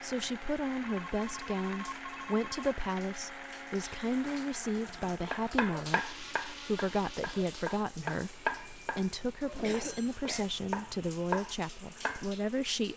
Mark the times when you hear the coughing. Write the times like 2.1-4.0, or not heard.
9.6-10.5.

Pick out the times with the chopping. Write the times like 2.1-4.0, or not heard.
4.8-12.6.